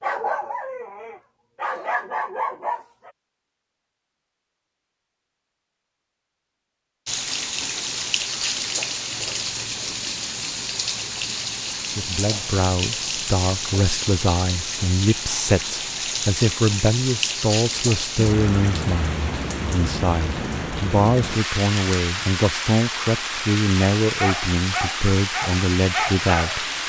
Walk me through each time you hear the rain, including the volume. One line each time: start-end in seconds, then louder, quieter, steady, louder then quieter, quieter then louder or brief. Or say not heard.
7.0-26.8 steady.